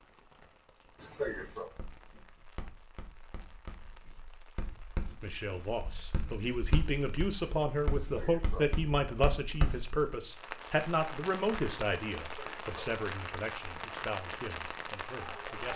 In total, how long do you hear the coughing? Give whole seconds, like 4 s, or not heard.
2 s.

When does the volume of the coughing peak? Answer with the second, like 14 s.
1 s.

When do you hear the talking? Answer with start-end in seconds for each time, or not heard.
5.2-15.7.